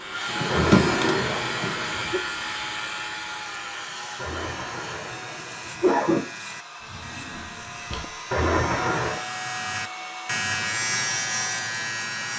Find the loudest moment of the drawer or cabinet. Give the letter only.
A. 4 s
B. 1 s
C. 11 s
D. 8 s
B.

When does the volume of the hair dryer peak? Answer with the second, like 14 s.
1 s.